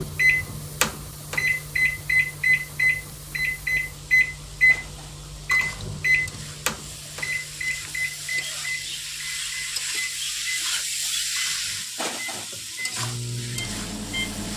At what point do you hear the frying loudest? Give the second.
11 s.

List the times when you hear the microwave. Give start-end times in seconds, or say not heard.
0.0-14.5.